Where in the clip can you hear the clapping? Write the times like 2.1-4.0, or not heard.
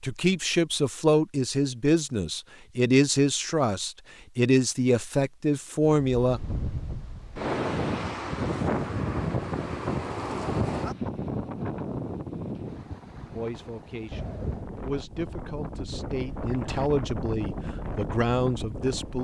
not heard.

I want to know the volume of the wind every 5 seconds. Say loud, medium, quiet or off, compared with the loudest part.
off, loud, loud, medium.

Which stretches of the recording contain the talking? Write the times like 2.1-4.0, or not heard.
0.0-6.4, 13.3-19.2.